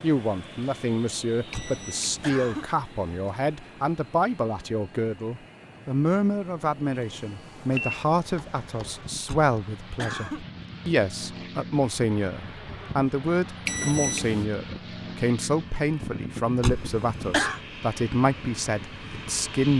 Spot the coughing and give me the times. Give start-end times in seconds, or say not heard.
1.5-2.7, 9.2-10.4, 16.6-17.6.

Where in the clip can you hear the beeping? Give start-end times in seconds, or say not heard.
1.5-2.4, 7.7-9.2, 13.7-14.4.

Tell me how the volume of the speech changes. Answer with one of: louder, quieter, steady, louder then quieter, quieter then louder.
steady.